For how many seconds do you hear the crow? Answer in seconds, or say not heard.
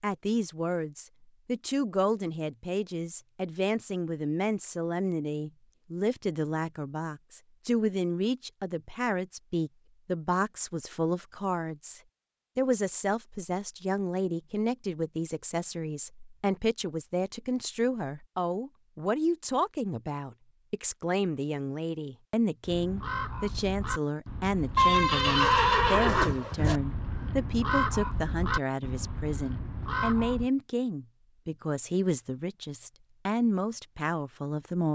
8 s.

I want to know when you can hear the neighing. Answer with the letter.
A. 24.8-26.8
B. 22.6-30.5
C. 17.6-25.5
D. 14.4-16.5
A.